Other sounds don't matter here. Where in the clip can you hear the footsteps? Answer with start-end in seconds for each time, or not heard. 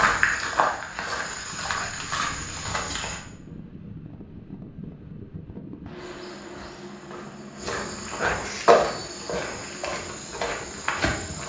0.0-3.2, 6.0-11.4.